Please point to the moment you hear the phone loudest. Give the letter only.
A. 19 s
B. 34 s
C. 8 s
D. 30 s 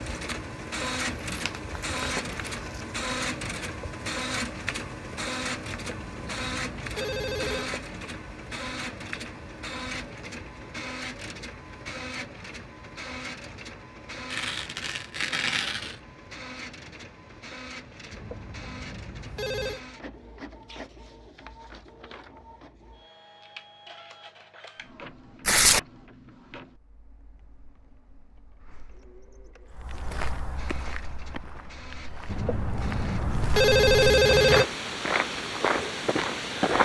B.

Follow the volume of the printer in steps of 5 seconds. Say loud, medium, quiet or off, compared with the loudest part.
loud, loud, medium, medium, quiet, quiet, quiet, off.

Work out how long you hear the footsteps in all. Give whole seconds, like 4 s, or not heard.
7 s.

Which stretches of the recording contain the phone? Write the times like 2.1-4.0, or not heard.
5.7-7.7, 18.1-19.8, 32.2-34.6.